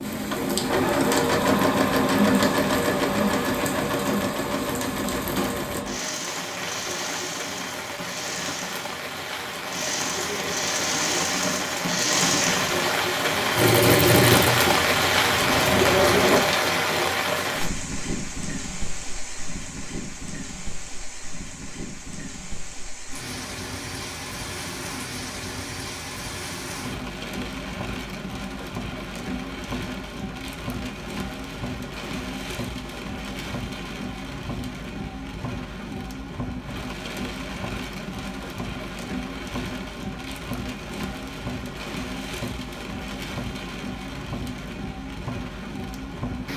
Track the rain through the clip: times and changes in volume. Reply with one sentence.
The rain can be heard from 0.0 to 46.5 s, getting louder then quieter.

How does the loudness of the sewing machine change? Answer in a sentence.
The volume of the sewing machine goes down, then up.